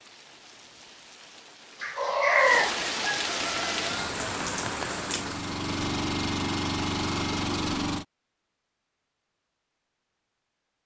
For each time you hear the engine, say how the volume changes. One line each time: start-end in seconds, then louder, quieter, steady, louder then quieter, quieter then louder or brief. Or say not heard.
3.4-8.1 louder.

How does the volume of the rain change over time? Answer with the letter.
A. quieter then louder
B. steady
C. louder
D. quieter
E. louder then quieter
C.